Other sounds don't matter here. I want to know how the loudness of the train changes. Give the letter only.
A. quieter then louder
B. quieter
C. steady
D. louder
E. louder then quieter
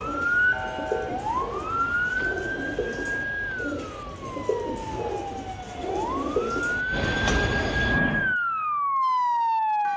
D.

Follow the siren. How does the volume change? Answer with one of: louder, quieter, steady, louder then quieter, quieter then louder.
quieter then louder.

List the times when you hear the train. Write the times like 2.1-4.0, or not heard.
0.0-8.3.